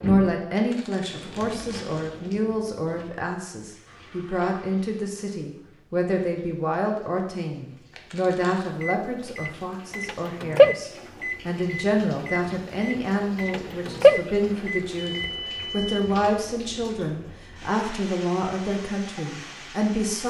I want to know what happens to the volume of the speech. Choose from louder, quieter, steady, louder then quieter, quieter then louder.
steady.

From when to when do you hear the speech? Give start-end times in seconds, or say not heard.
0.0-20.2.